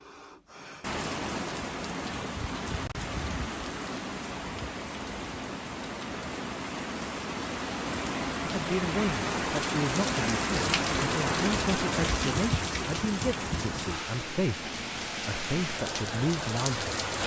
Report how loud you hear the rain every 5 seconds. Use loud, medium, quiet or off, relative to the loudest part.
medium, loud, loud, loud.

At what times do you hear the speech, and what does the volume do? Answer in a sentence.
The speech can be heard from 8.4 to 16.9 s, at a steady volume.